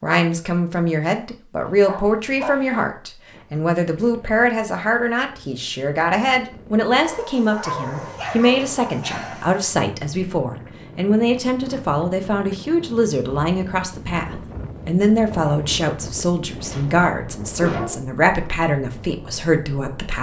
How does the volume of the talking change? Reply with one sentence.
The volume of the talking stays about the same.